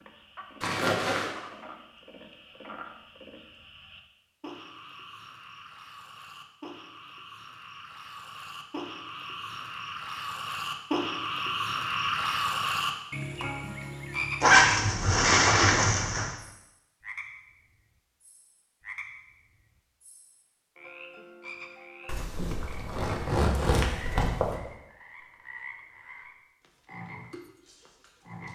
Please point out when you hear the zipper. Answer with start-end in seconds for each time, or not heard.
0.6-1.3, 14.4-16.3, 22.1-24.6.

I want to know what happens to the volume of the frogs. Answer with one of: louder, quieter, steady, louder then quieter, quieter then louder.
louder then quieter.